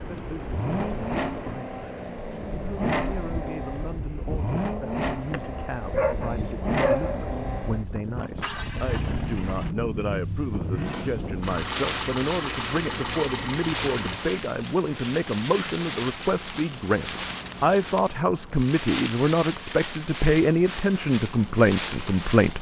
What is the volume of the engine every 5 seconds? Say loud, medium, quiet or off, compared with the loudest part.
loud, loud, loud, off, off.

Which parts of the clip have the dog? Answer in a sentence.
You can hear the dog from 5.9 to 7.7 s.